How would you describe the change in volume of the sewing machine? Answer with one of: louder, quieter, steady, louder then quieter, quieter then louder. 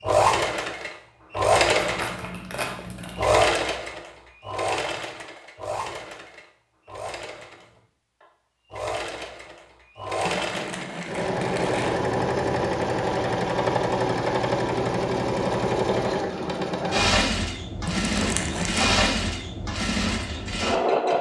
quieter then louder.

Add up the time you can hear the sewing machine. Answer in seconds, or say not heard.
21 s.